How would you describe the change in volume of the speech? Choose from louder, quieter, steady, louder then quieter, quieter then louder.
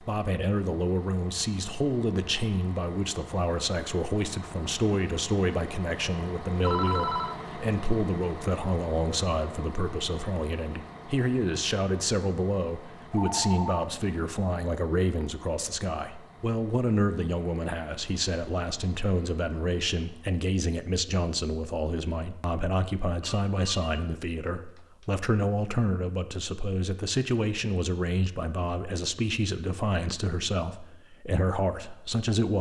steady.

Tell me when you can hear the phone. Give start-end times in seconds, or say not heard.
6.6-7.3, 13.0-14.2, 23.2-25.1.